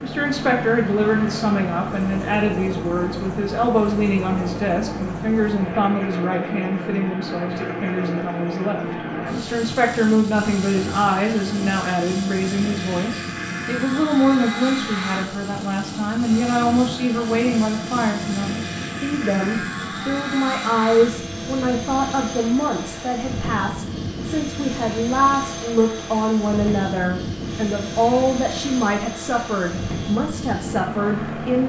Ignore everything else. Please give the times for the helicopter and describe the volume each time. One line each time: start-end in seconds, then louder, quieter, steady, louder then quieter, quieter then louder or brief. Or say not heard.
0.0-31.6 steady.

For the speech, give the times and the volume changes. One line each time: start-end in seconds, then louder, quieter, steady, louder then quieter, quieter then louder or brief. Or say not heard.
0.0-31.6 steady.